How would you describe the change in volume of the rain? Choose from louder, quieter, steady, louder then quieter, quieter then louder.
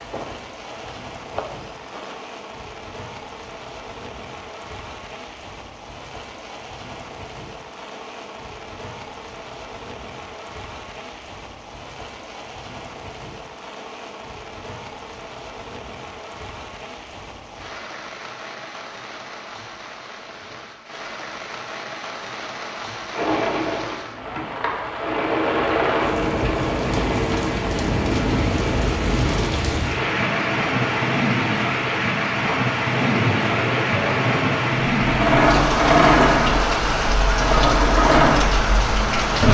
louder.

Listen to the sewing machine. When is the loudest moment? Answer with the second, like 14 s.
36 s.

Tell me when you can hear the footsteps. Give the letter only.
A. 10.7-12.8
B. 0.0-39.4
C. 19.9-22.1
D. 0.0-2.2
D.